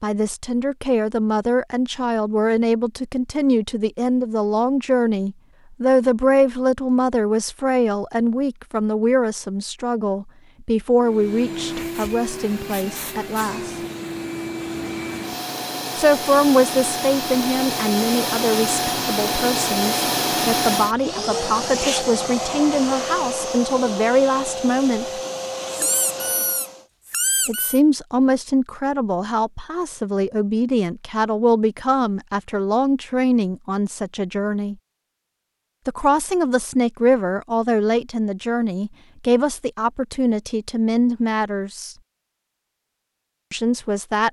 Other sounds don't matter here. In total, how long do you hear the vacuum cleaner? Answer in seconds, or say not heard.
16 s.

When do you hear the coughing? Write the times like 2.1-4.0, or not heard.
not heard.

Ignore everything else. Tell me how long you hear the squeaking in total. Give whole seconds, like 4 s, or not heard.
2 s.